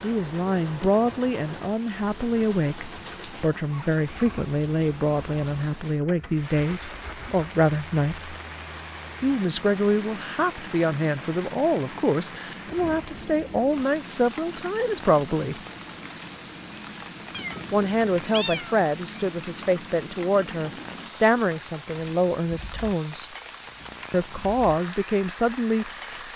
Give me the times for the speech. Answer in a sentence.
The speech can be heard from 0.0 to 8.3 s, from 9.2 to 15.6 s, from 17.7 to 23.2 s and from 24.1 to 26.3 s.